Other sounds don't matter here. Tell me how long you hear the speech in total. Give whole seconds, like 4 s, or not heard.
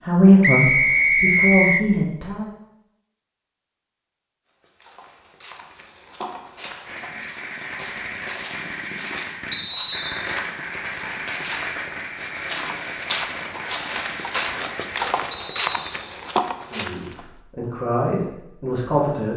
5 s.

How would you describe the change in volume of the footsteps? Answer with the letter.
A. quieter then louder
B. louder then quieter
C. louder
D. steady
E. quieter
C.